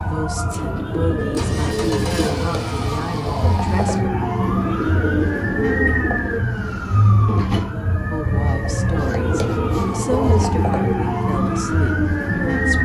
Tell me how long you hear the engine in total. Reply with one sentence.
The engine can be heard for 4 seconds in total.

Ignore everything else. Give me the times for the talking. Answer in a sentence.
You can hear the talking from 0.1 to 4.1 s and from 8.1 to 12.8 s.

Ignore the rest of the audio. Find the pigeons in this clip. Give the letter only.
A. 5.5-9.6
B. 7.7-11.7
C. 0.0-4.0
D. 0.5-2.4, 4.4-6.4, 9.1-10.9
D.